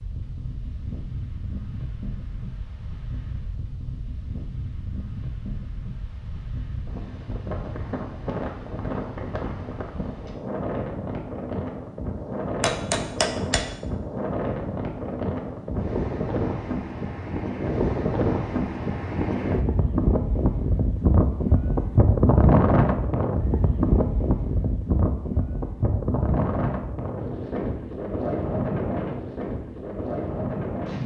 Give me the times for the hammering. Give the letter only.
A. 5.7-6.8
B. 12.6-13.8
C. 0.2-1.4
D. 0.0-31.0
B.